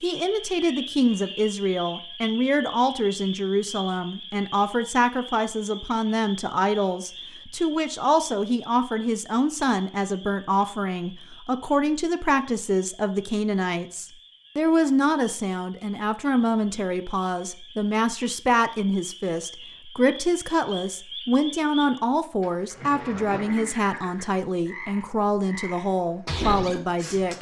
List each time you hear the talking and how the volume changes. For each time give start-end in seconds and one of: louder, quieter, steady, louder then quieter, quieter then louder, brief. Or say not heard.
0.0-27.3 steady.